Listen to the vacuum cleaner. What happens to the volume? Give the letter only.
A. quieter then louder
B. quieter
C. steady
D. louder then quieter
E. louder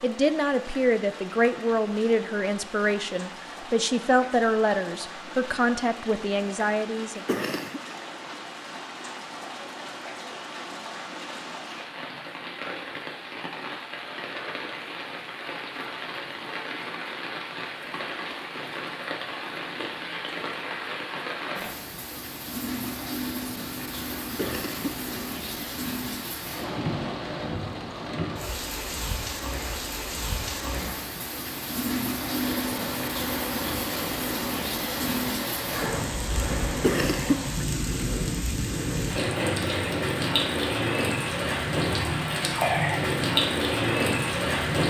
C.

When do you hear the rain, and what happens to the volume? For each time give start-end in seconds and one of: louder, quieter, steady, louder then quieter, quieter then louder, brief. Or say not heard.
0.0-44.8 louder.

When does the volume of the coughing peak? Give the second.
37 s.